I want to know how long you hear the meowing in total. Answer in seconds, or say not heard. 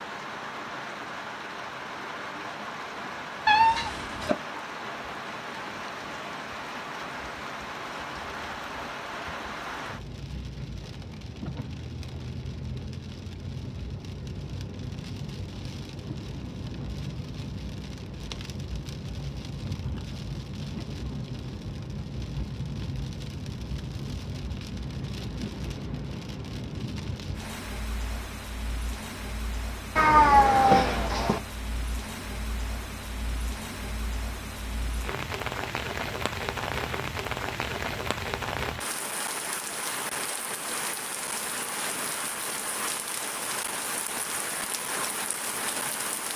2 s.